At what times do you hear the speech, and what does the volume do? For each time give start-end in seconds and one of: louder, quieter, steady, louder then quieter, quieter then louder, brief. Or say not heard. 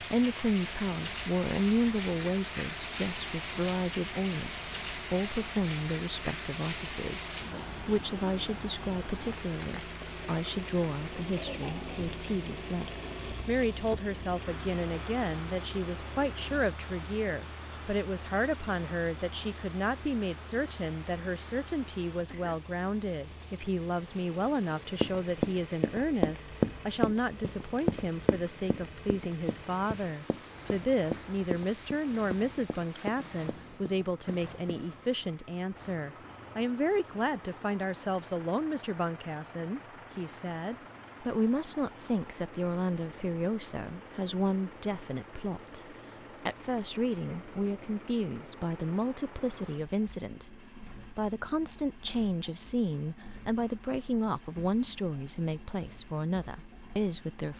0.0-57.5 steady.